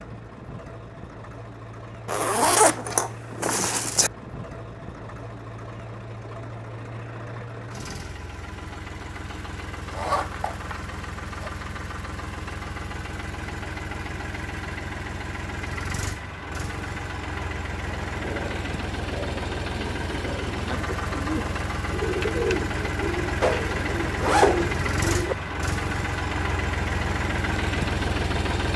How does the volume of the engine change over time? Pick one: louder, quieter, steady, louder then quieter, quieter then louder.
louder.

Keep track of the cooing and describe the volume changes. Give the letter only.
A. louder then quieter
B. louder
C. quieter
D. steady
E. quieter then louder
B.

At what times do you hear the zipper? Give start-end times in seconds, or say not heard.
2.0-4.1, 9.9-11.5, 23.4-25.4.